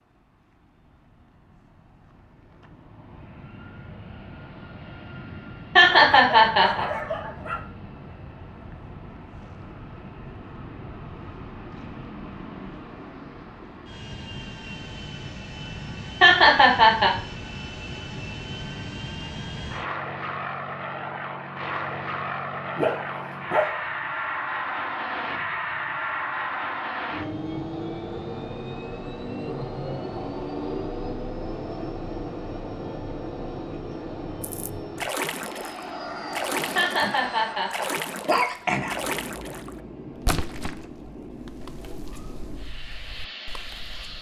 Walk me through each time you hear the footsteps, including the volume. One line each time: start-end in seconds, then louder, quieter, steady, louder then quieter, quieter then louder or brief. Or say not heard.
not heard.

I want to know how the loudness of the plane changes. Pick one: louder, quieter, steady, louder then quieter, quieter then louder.
louder then quieter.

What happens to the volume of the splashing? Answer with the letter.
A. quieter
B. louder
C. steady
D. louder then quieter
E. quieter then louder
A.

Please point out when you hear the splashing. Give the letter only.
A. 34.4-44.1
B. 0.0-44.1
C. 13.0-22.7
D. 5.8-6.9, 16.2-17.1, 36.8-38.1
A.